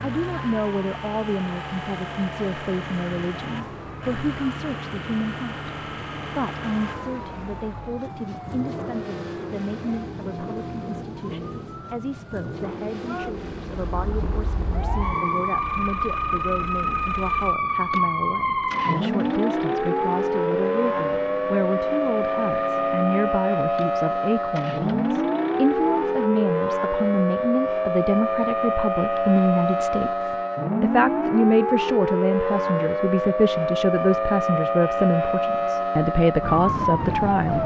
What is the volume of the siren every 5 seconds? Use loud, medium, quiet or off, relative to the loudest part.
quiet, quiet, quiet, loud, loud, loud, loud, loud.